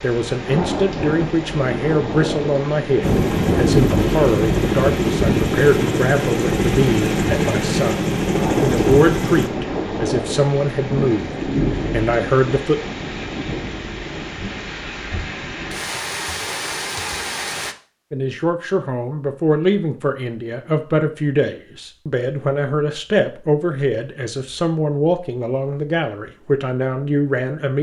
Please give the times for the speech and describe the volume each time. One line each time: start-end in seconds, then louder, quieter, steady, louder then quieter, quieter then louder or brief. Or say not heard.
0.0-12.8 steady
18.1-27.7 steady.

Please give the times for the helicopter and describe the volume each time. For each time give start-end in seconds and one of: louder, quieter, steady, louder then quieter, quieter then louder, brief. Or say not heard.
3.0-9.5 steady.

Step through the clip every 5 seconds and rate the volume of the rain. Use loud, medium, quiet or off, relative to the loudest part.
loud, loud, loud, loud, off, off.